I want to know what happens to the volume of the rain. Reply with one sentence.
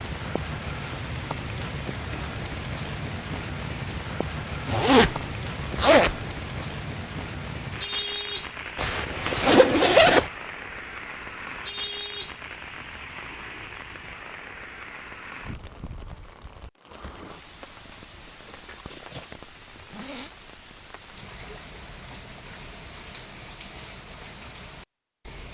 The volume of the rain goes down.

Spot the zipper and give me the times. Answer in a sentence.
You can hear the zipper from 4.7 to 6.7 s, from 8.8 to 10.3 s and from 19.6 to 20.3 s.